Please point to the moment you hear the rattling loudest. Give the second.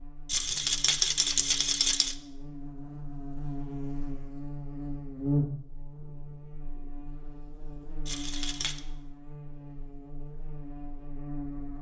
1 s.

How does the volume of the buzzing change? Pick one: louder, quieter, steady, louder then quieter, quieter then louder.
louder then quieter.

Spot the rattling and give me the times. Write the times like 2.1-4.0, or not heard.
0.2-2.1, 8.1-8.8.